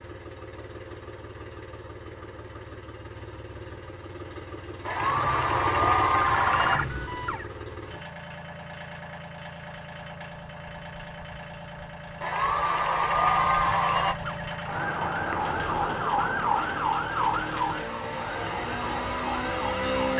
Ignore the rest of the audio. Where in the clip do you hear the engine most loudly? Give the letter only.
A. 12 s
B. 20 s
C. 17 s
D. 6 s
B.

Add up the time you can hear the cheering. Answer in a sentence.
The cheering can be heard for 4 seconds in total.